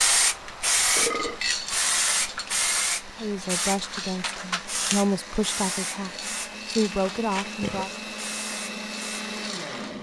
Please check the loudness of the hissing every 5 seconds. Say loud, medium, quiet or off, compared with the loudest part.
loud, medium.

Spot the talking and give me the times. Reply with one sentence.
You can hear the talking from 3.1 to 7.9 s.